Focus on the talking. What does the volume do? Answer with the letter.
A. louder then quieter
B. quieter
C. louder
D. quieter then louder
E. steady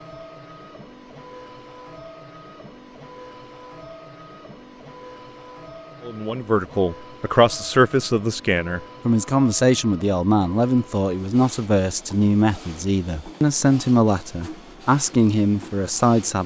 E.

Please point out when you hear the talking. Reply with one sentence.
You can hear the talking from 6.0 to 16.4 s.